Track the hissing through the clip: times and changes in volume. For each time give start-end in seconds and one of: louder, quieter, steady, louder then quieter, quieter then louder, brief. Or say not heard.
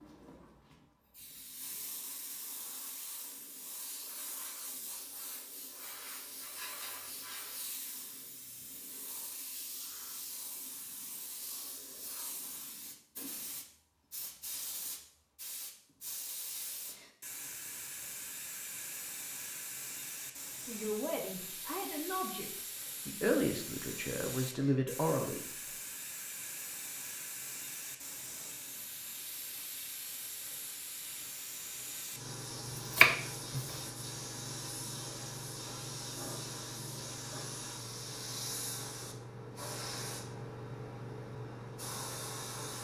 0.0-42.7 louder.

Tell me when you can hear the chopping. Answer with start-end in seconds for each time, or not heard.
32.8-34.0.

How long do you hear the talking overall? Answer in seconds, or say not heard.
5 s.